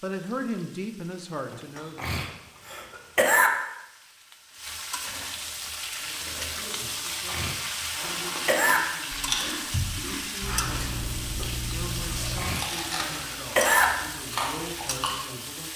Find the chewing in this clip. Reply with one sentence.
The chewing can be heard from 8.0 to 15.1 s.